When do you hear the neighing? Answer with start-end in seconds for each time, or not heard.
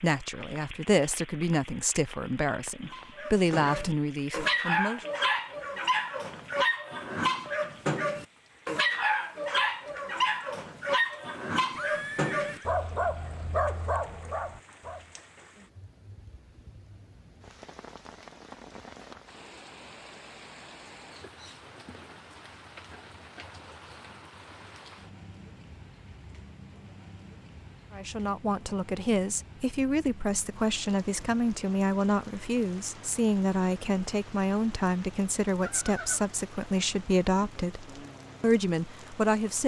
11.8-12.7, 35.6-36.3.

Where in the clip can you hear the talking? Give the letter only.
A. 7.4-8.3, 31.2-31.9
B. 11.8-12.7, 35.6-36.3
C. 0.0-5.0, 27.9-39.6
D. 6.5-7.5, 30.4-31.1
C.